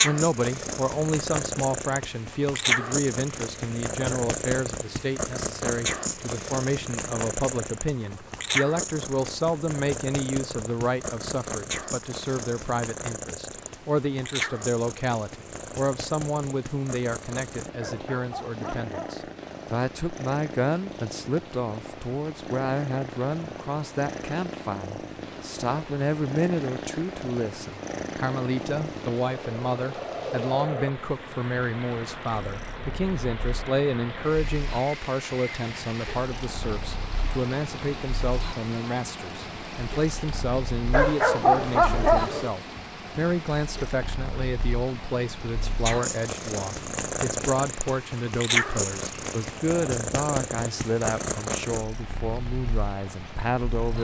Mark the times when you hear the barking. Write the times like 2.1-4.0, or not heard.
17.8-19.2, 40.9-42.5.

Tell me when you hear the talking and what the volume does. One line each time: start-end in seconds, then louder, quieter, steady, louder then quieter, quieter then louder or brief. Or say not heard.
0.0-53.9 steady.